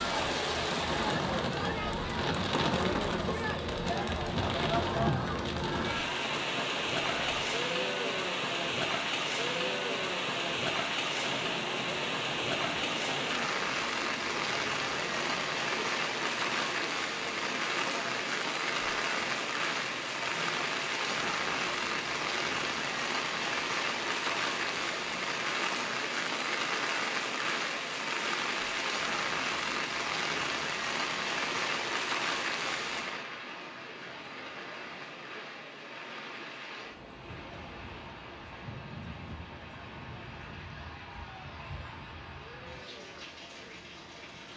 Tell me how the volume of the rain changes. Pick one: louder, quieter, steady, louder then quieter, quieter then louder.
quieter.